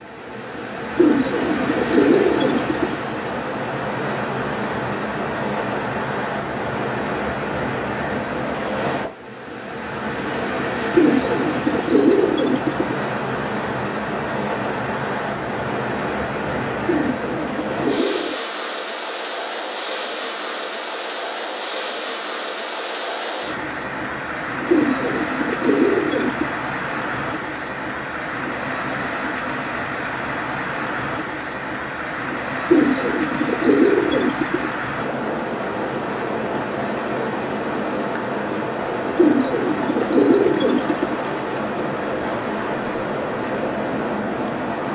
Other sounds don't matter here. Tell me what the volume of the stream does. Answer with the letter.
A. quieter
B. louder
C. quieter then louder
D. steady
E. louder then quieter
D.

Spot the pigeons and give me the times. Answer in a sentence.
The pigeons can be heard from 0.9 to 3.0 s, from 10.9 to 12.9 s, from 16.9 to 18.4 s, from 24.6 to 26.4 s, from 32.6 to 34.7 s and from 39.1 to 41.1 s.